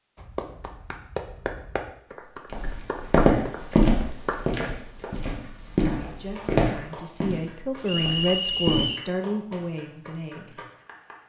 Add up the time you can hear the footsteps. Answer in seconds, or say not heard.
6 s.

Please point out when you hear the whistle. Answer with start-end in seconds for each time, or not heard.
7.8-9.1.